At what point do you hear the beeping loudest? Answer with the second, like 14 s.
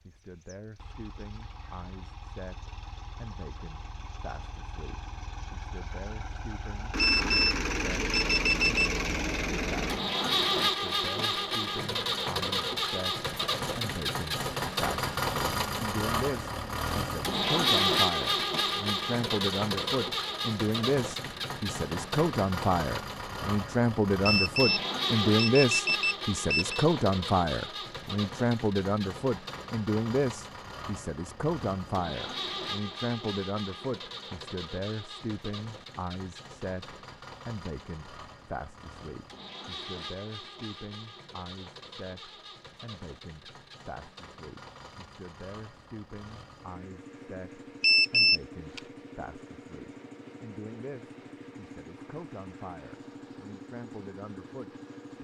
48 s.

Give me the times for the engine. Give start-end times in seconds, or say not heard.
0.1-55.1.